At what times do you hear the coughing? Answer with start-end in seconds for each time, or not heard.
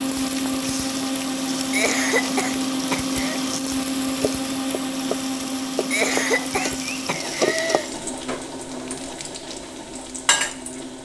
1.7-3.4, 5.9-7.9.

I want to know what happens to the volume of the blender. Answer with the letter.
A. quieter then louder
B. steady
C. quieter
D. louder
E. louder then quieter
C.